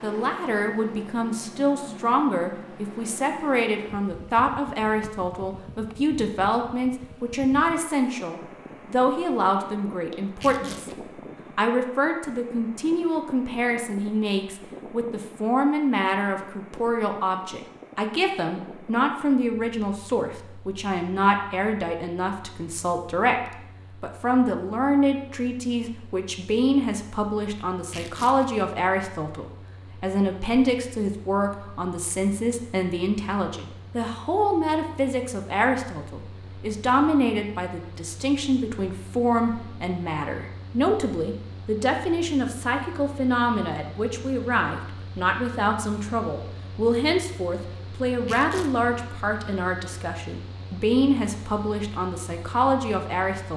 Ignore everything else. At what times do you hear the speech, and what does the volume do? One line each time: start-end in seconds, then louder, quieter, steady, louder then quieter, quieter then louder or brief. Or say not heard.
0.0-10.9 steady
11.6-53.5 steady.